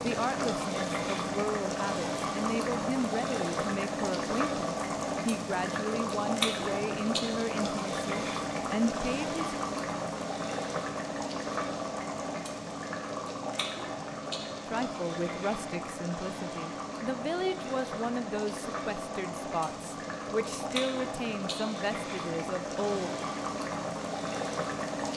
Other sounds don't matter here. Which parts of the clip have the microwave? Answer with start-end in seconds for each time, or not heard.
not heard.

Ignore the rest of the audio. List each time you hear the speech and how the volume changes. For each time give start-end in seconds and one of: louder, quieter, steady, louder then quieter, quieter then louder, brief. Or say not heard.
0.0-9.4 steady
14.7-23.1 steady.